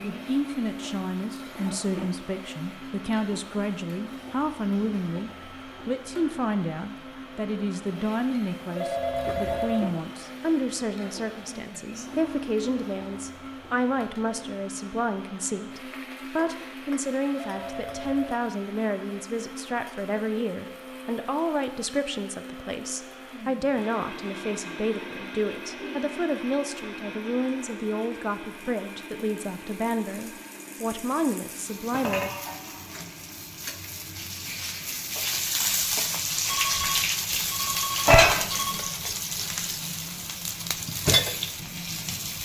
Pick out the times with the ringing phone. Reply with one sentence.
You can hear the ringing phone from 8.8 to 9.9 s, from 17.4 to 18.4 s and from 36.5 to 38.9 s.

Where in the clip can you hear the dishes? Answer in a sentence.
The dishes can't be heard in this clip.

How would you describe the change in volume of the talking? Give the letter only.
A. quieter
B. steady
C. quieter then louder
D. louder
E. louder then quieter
B.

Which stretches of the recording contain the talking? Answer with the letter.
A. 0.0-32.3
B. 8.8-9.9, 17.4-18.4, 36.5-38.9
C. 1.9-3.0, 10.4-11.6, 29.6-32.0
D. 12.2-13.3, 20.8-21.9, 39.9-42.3
A.